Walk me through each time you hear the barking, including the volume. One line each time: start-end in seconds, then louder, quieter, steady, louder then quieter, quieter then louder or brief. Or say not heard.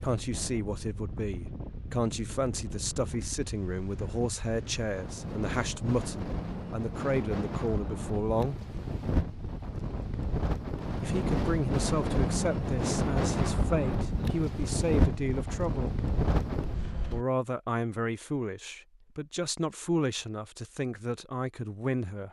not heard.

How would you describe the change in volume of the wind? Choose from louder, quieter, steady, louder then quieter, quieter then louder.
louder.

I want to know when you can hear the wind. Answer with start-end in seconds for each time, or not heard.
0.0-17.2.